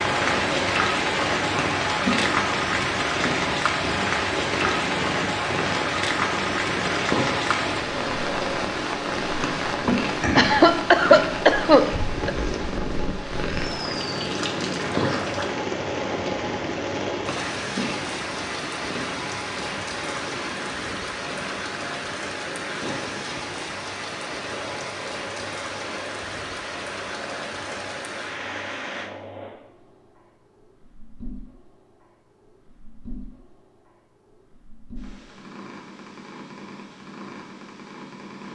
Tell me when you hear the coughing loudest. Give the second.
11 s.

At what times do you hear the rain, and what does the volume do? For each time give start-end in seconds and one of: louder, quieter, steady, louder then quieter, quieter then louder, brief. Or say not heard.
0.0-29.1 quieter.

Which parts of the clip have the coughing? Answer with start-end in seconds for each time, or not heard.
9.8-12.3.